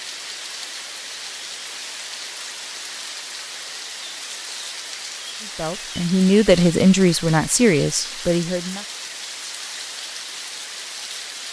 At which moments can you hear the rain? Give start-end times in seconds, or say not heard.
0.0-11.4.